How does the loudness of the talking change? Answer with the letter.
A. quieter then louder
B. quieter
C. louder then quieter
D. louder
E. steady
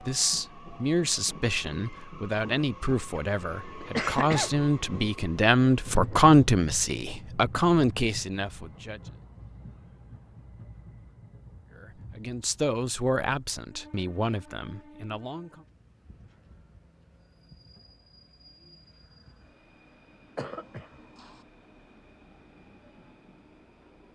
C.